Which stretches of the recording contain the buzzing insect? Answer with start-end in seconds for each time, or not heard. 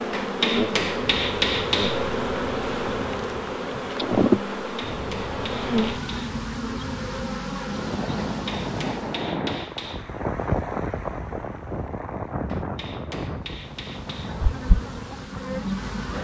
0.0-9.3, 13.6-16.1.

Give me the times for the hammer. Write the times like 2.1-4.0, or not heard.
0.1-2.1, 4.7-6.3, 8.3-10.2, 12.4-14.4.